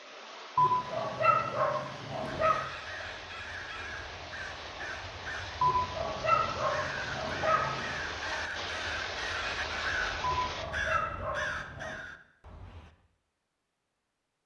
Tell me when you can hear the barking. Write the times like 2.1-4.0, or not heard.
0.6-2.6, 5.6-8.0, 10.2-12.0.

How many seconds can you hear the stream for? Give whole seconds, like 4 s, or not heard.
11 s.